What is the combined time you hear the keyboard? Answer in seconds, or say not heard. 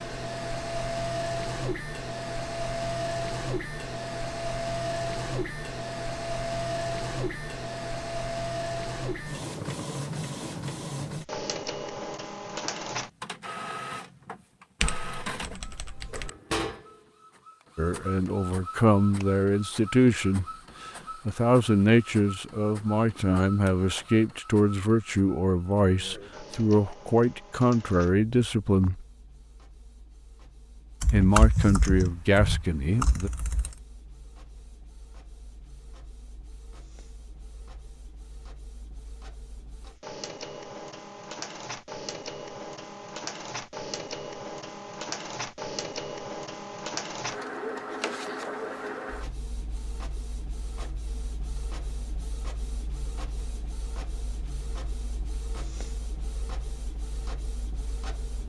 4 s.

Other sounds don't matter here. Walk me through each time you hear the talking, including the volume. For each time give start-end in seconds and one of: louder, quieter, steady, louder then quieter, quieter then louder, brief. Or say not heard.
17.8-20.4 brief
21.2-29.0 steady
31.1-33.3 brief.